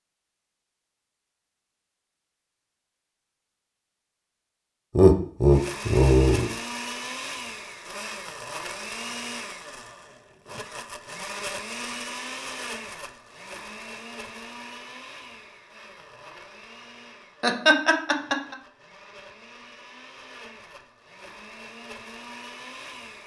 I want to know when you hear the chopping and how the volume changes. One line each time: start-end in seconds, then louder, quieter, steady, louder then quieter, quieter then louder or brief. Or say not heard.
not heard.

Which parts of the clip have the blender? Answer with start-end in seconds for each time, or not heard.
5.5-23.2.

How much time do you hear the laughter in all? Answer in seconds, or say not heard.
3 s.